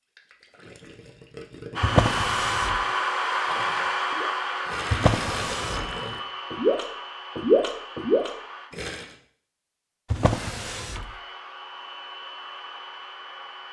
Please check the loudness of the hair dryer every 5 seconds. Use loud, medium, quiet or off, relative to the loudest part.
loud, medium, quiet.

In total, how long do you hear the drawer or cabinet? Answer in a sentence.
The drawer or cabinet can be heard for 3 seconds in total.